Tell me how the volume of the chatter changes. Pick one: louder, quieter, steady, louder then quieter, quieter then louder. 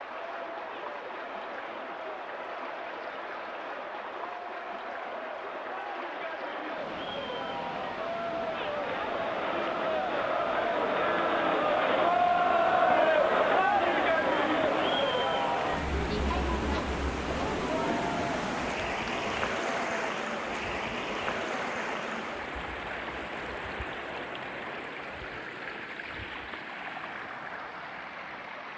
louder then quieter.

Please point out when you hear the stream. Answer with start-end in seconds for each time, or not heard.
0.0-28.7.